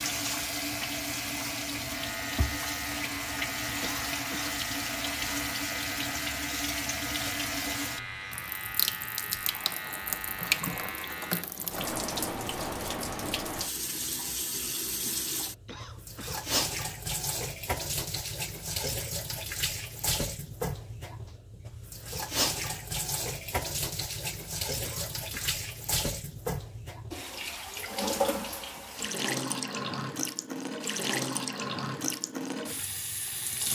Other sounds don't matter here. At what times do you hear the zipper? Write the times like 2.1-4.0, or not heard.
not heard.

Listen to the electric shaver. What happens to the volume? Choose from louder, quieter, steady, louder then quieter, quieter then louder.
steady.